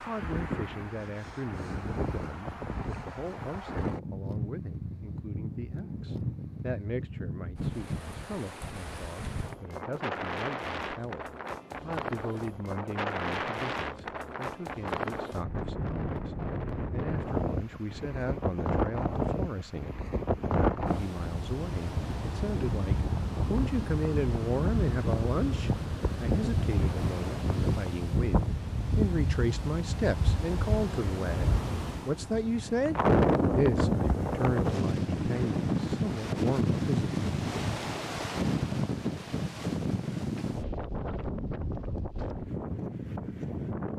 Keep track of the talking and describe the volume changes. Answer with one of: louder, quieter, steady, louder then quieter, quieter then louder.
louder.